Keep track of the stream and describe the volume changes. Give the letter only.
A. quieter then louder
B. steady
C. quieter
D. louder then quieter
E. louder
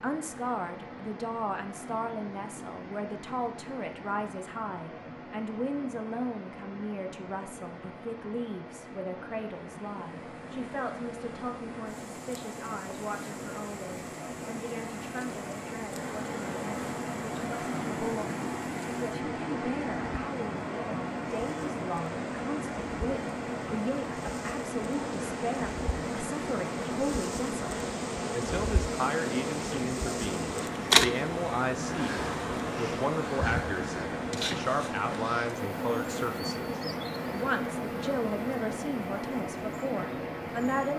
E.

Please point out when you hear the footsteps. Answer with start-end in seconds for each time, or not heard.
not heard.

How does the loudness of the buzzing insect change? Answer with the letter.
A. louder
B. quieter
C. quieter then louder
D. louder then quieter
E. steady
D.